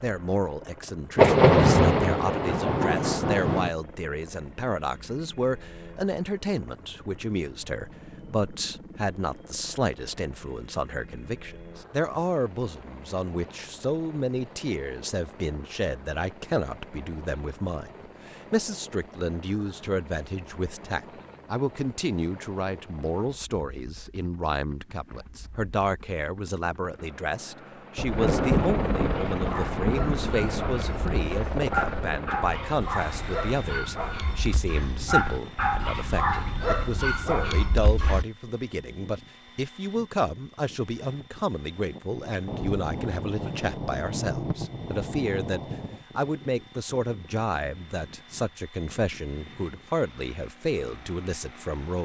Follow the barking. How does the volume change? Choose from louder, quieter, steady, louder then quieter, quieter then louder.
louder.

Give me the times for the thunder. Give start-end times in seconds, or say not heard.
1.1-3.7, 27.9-32.2, 42.5-46.0.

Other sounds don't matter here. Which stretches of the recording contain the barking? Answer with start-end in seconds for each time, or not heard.
29.1-38.2.